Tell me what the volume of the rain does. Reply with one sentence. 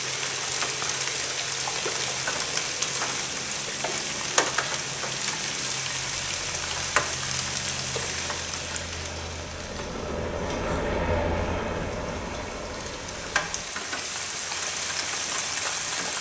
The volume of the rain goes down, then up.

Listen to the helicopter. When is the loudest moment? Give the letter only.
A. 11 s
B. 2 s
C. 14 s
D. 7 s
A.